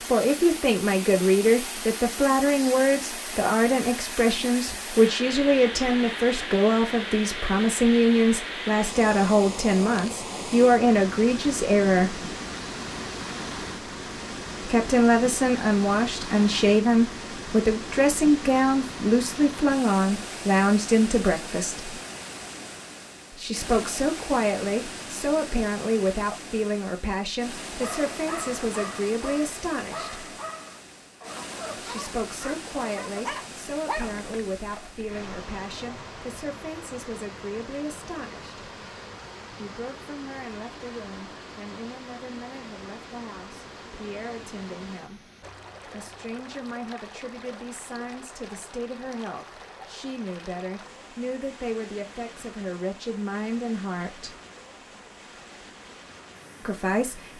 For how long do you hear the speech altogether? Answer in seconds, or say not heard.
49 s.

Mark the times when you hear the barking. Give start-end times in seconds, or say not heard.
27.7-35.3.